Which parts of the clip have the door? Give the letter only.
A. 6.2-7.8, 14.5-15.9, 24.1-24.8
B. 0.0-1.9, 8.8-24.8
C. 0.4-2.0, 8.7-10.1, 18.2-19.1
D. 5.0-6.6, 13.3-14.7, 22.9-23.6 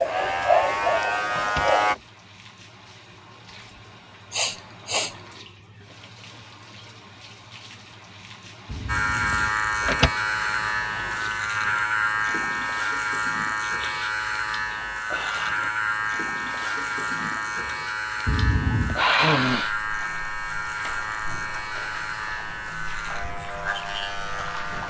C.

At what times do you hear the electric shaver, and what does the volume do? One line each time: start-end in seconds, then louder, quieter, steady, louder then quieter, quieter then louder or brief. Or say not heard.
0.0-1.9 brief
8.8-24.8 quieter.